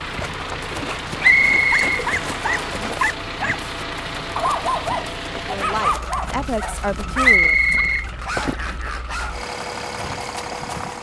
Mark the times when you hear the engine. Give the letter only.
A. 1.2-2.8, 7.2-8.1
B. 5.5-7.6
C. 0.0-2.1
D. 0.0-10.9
D.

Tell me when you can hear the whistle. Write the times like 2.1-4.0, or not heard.
1.2-2.8, 7.2-8.1.